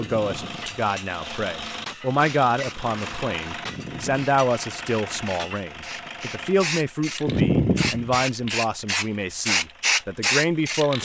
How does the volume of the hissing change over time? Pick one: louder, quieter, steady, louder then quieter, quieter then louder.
louder.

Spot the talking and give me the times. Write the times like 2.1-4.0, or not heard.
0.0-10.9.